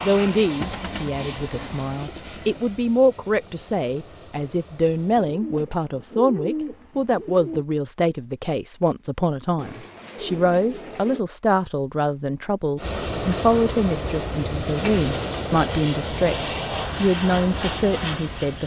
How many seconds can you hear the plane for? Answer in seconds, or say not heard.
11 s.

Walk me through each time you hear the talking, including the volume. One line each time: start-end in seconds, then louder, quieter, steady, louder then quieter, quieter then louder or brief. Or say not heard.
0.0-18.6 steady.